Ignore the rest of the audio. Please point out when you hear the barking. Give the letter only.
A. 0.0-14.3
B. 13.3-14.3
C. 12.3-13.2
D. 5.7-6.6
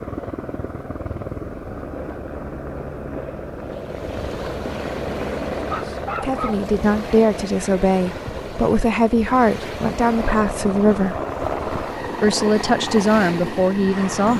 D.